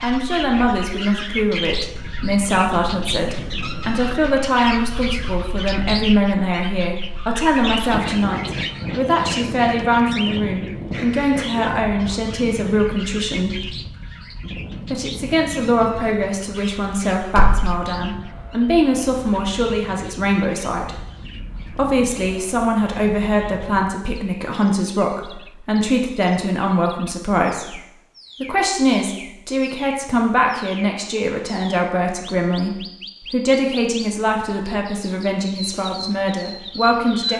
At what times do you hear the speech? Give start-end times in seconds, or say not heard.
0.0-13.8, 14.9-20.9, 21.7-27.8, 28.4-37.3.